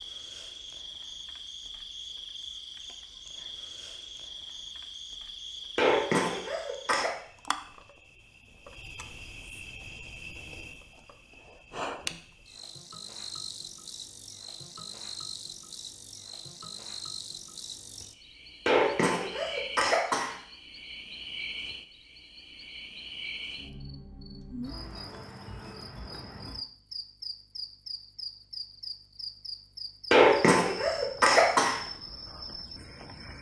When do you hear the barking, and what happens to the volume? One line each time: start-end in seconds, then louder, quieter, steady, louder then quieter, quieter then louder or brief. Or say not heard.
not heard.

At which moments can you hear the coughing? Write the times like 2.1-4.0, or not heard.
5.8-7.2, 18.6-20.4, 30.1-31.8.